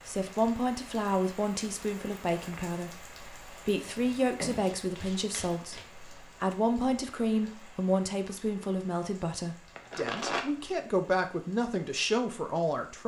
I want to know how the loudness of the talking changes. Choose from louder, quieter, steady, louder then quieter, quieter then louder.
steady.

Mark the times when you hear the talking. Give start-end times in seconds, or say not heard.
0.1-13.0.